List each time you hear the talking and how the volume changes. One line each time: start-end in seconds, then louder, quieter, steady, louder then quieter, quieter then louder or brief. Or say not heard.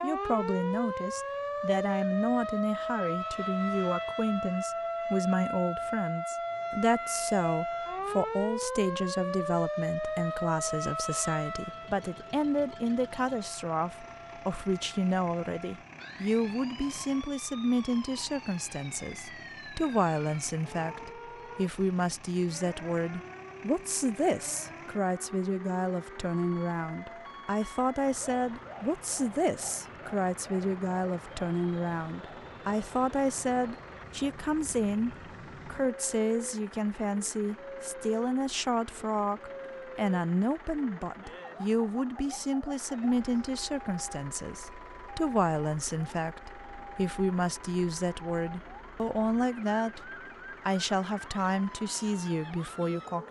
0.0-53.2 steady.